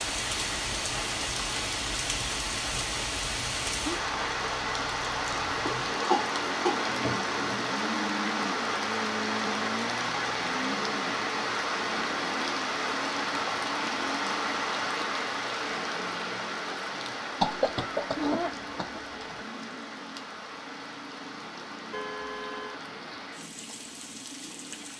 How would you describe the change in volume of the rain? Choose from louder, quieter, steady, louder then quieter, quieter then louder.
quieter.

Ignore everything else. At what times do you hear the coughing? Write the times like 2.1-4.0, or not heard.
5.7-7.4, 17.4-19.1.